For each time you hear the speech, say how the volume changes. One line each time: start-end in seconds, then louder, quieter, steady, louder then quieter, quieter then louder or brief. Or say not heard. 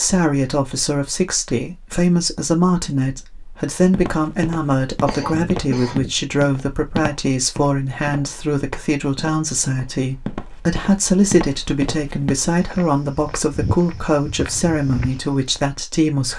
0.0-16.3 steady.